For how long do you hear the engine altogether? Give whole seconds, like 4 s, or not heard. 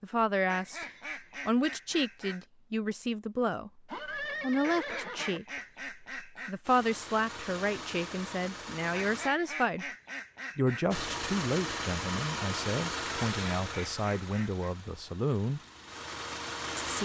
9 s.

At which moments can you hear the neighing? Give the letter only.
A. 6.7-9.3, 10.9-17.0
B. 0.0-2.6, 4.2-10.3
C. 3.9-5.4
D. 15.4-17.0
C.